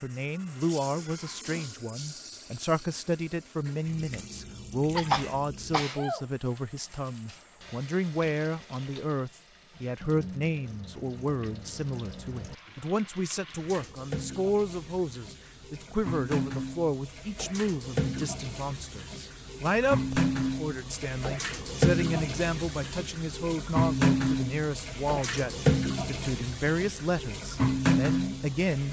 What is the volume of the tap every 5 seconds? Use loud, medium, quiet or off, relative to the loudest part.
quiet, quiet, quiet, medium, loud, loud.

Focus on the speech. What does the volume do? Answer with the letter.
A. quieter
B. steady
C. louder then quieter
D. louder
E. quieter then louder
B.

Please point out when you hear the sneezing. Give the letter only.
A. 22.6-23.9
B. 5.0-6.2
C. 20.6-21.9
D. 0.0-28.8
B.